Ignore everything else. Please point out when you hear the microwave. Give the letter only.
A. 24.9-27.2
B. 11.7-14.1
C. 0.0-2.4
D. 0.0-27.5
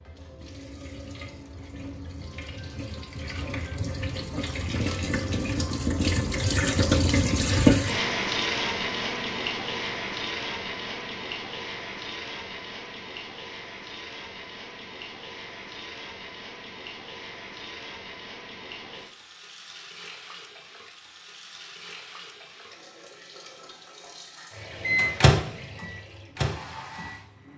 A.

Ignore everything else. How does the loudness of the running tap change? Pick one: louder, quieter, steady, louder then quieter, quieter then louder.
louder then quieter.